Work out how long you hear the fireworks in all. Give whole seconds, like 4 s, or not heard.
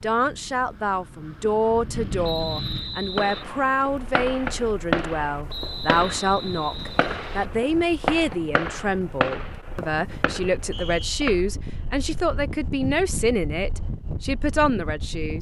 8 s.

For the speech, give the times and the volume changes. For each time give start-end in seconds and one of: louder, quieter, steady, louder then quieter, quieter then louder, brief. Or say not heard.
0.0-15.3 steady.